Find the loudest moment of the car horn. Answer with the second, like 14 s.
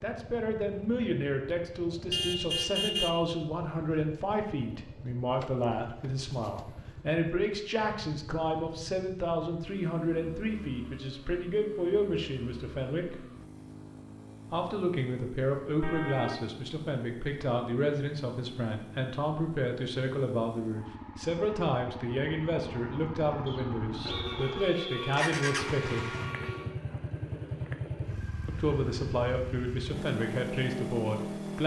3 s.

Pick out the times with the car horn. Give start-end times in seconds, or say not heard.
2.1-3.1, 15.8-16.4, 24.1-26.8.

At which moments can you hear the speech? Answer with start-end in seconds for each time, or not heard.
0.0-13.2, 14.5-26.1, 28.4-31.6.